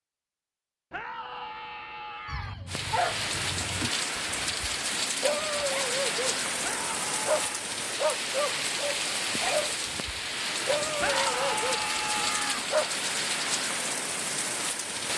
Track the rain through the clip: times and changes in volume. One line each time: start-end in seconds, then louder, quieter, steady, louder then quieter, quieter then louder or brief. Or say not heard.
2.6-15.1 steady.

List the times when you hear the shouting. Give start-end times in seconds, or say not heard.
0.9-2.5, 6.6-7.7, 10.9-12.7.